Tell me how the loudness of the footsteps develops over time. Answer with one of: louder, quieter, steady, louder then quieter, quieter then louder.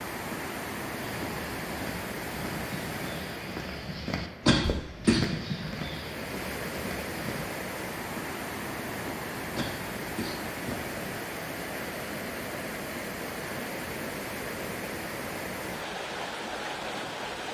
louder then quieter.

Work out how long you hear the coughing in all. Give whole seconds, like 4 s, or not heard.
2 s.